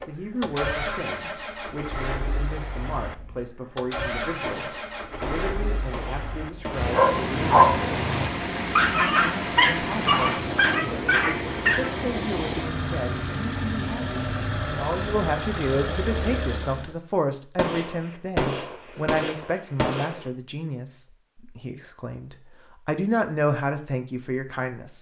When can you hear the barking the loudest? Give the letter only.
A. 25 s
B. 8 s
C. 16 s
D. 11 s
B.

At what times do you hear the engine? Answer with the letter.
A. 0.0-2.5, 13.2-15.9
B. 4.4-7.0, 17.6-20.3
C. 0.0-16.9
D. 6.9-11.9
C.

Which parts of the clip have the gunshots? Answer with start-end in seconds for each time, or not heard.
4.4-7.0, 17.6-20.3.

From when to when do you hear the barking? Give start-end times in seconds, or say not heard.
6.9-11.9.